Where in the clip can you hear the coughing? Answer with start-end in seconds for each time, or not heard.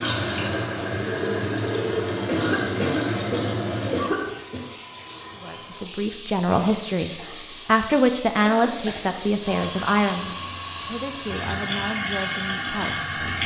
2.2-4.7, 8.7-9.1.